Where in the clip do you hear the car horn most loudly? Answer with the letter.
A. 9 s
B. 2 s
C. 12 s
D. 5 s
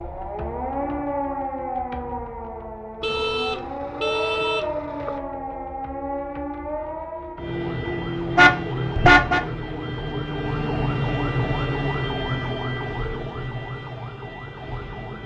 A.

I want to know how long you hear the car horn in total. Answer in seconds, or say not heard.
3 s.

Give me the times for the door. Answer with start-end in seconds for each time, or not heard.
not heard.